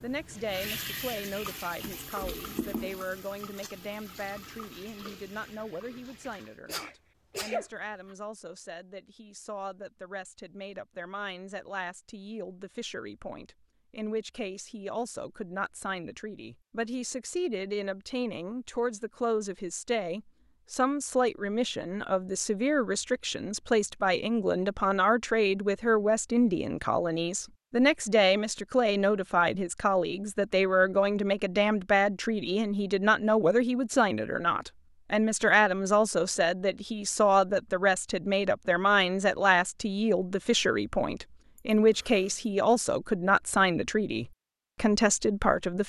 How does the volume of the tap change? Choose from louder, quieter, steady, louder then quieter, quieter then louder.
quieter.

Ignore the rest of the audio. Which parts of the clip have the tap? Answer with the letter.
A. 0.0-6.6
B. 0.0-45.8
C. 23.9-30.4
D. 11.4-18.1
A.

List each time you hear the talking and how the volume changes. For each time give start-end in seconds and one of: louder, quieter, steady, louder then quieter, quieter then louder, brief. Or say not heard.
0.0-45.8 louder.